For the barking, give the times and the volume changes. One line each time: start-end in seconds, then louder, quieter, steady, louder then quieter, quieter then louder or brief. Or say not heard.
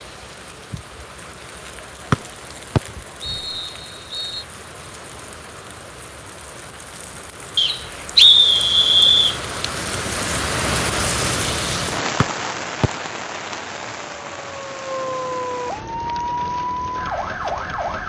not heard.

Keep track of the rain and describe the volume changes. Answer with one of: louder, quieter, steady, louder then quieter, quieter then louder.
louder then quieter.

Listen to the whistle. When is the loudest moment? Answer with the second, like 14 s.
8 s.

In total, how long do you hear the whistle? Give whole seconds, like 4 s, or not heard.
5 s.